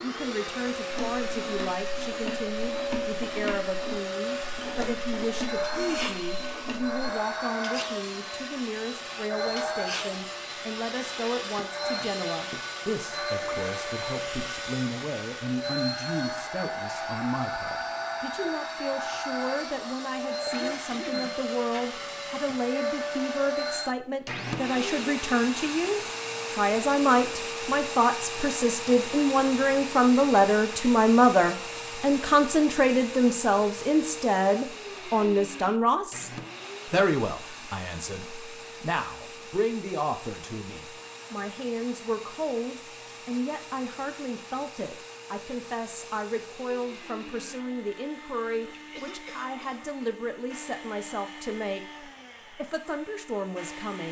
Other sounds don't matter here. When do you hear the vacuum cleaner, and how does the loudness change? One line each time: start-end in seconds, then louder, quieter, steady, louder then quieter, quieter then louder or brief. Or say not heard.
0.0-54.0 quieter.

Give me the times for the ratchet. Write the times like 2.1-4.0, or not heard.
0.9-7.0.